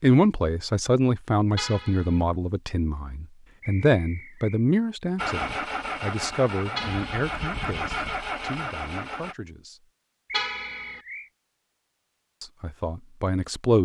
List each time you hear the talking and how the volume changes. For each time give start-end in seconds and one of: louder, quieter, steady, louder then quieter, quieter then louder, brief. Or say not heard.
0.0-9.8 quieter
12.4-13.8 brief.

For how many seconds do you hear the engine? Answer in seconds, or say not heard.
4 s.